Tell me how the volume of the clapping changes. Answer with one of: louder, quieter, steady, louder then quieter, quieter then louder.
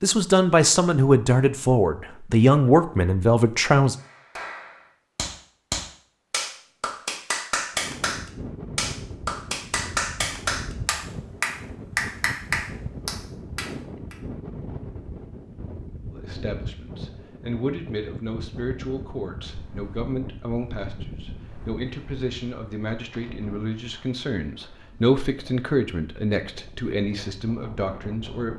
steady.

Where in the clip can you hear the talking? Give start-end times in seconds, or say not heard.
0.0-4.0, 16.1-28.5.